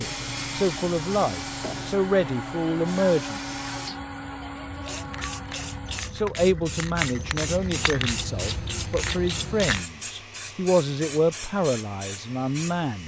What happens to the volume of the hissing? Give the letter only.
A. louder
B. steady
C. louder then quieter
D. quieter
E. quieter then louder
C.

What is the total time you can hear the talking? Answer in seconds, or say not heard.
10 s.